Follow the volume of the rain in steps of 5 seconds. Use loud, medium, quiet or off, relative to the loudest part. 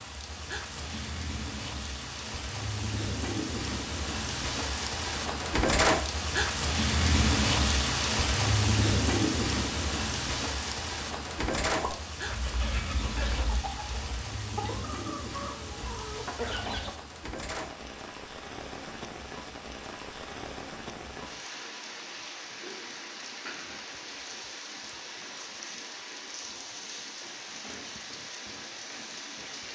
medium, loud, medium, quiet, quiet, quiet.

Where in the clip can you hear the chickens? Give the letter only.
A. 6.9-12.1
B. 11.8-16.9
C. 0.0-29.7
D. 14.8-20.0
B.